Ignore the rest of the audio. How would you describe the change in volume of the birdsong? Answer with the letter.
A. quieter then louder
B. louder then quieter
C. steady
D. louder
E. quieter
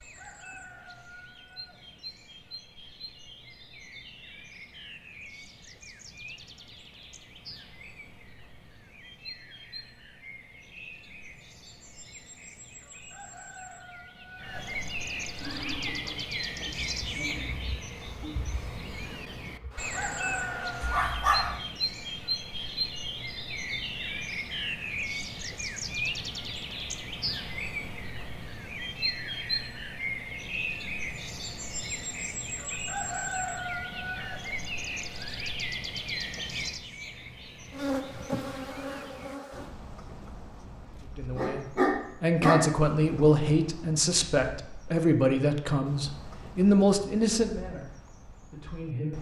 B.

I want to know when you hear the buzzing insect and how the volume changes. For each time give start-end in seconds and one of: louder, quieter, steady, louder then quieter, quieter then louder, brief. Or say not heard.
15.4-21.1 quieter then louder
37.7-39.7 brief.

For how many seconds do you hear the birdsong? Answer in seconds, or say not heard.
49 s.